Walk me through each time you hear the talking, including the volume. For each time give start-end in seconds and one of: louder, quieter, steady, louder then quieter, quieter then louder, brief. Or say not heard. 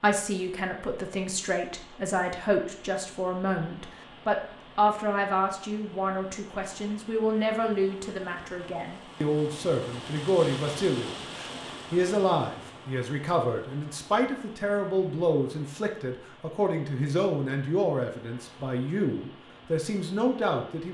0.0-20.8 steady.